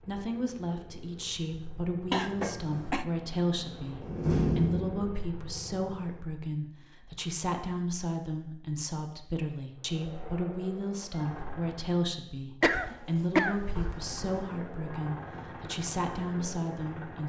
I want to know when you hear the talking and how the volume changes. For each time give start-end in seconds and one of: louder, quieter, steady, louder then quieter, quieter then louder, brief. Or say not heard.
0.0-17.2 steady.